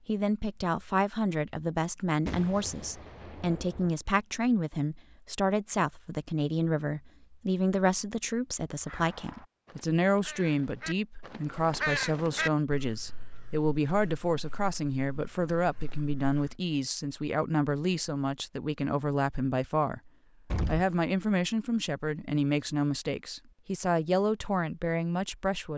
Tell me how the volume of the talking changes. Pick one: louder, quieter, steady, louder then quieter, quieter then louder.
steady.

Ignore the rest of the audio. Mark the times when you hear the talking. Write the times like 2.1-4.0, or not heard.
0.1-25.7.